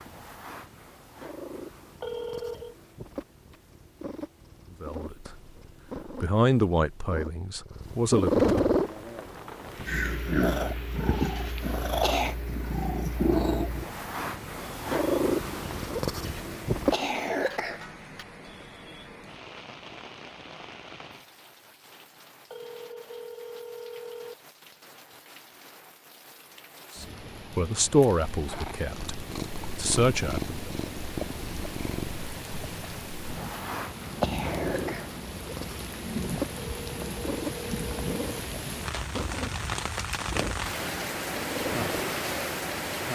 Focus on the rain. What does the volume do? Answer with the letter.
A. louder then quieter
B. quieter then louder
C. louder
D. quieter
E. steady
C.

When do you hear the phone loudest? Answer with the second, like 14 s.
2 s.